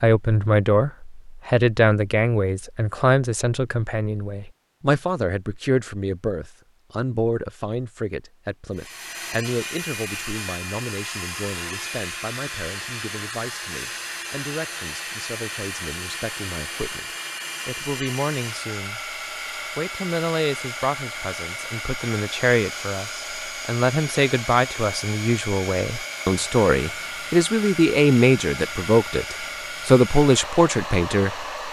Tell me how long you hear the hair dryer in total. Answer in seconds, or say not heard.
23 s.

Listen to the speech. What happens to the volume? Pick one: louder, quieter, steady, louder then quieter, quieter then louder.
quieter then louder.